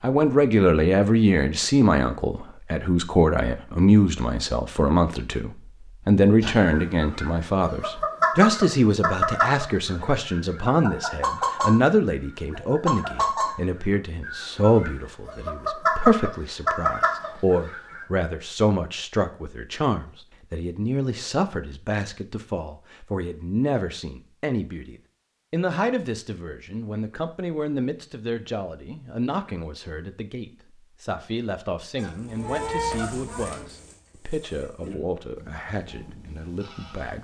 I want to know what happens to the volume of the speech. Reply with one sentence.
The loudness of the speech goes down.